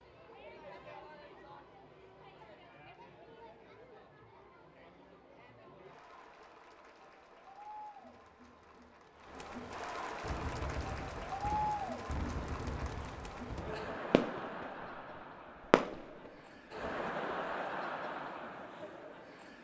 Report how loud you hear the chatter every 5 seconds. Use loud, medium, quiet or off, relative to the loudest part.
quiet, medium, loud, loud.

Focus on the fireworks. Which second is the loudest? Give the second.
16 s.